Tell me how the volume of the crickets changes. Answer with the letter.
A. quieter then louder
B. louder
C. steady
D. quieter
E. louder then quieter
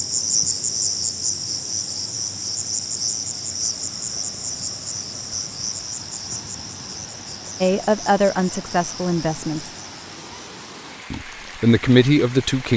D.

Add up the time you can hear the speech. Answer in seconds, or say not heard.
4 s.